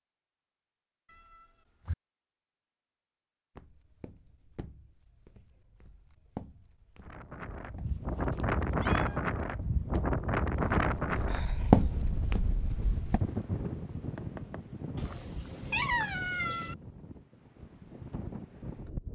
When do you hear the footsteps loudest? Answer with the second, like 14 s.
12 s.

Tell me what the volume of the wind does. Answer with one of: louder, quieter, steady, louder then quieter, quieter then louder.
quieter.